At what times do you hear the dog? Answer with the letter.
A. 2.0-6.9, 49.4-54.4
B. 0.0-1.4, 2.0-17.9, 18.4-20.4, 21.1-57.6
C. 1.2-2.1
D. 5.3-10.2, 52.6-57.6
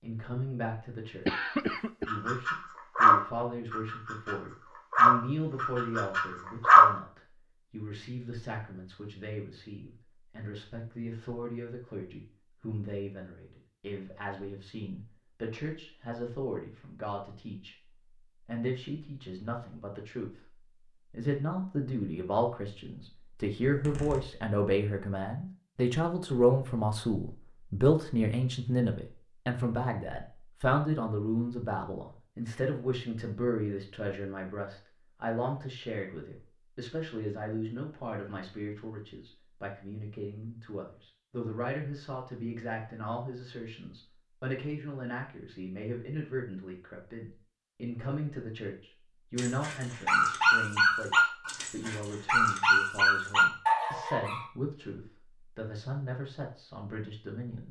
A.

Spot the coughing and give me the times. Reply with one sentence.
You can hear the coughing from 1.2 to 2.1 s.